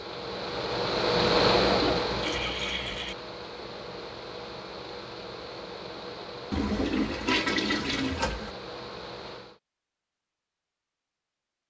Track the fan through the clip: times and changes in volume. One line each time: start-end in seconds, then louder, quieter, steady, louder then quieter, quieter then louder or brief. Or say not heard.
0.0-9.6 quieter.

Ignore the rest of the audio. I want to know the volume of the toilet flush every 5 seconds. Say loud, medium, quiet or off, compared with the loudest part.
medium, loud, off.